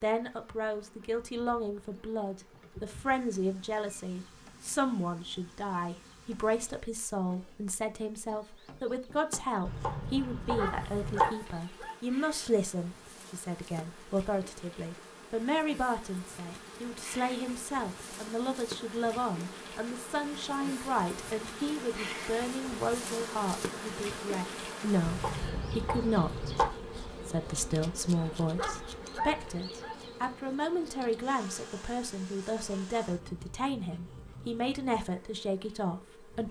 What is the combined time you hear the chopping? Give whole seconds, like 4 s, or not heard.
3 s.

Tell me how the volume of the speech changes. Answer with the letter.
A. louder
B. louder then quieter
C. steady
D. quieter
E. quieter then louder
C.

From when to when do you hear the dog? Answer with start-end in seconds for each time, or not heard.
10.2-11.9, 28.4-29.9.